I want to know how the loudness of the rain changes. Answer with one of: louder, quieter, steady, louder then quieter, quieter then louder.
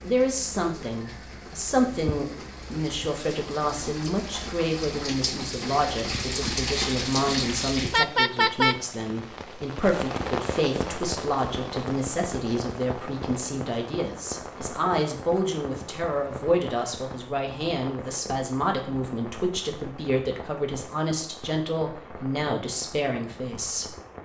louder then quieter.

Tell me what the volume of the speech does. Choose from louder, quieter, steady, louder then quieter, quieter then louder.
steady.